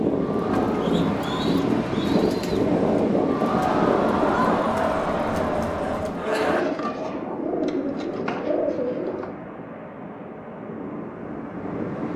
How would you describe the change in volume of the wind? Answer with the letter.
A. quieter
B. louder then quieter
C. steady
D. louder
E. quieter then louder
A.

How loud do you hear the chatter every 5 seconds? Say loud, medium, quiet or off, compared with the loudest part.
loud, loud, off.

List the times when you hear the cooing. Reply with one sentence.
You can hear the cooing from 0.5 to 2.7 s and from 6.3 to 9.3 s.